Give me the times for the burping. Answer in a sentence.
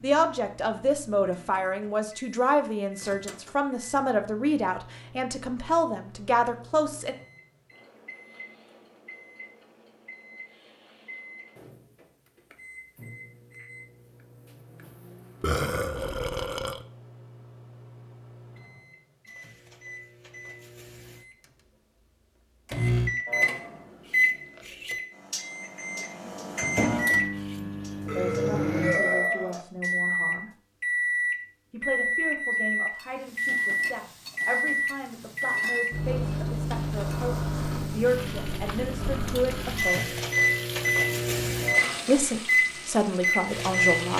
The burping can be heard from 15.4 to 16.9 s and from 28.1 to 29.6 s.